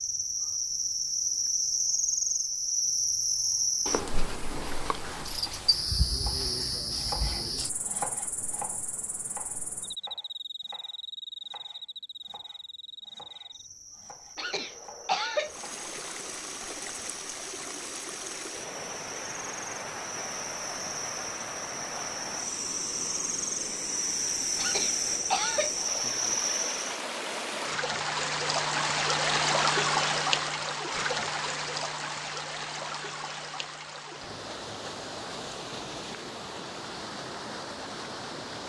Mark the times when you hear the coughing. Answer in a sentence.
The coughing can be heard from 14.3 to 15.6 s and from 24.6 to 25.8 s.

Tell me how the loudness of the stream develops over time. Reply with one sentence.
The volume of the stream goes up, then down.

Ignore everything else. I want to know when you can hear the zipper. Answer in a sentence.
The zipper can't be heard in this clip.